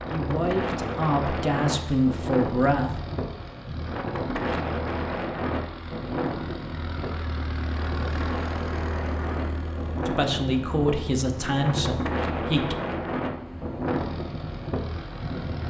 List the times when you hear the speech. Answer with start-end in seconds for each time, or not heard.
0.1-3.0, 10.1-12.8.